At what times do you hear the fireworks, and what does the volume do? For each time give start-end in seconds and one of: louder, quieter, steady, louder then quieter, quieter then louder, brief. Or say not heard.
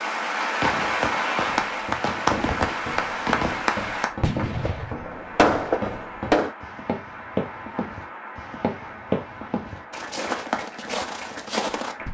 0.6-6.5 louder.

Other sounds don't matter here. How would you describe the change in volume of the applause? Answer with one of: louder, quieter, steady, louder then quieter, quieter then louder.
quieter.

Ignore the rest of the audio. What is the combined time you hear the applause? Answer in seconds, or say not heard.
12 s.